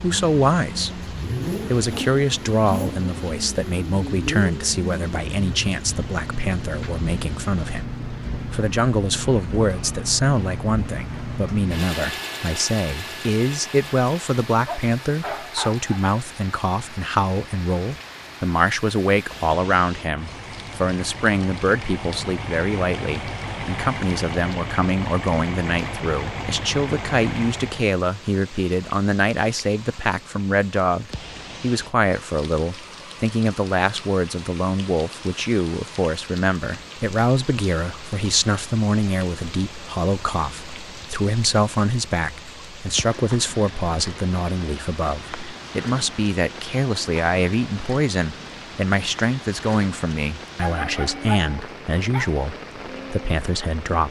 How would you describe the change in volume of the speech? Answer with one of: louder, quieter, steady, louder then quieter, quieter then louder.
steady.